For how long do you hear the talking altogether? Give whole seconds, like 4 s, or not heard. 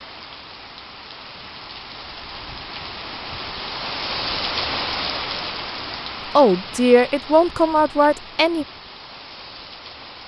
2 s.